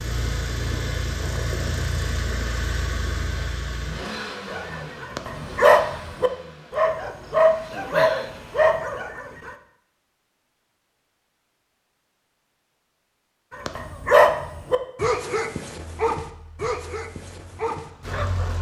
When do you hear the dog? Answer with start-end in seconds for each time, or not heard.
4.5-9.6, 13.5-18.5.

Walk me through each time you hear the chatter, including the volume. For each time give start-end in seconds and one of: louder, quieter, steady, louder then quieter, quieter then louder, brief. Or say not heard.
not heard.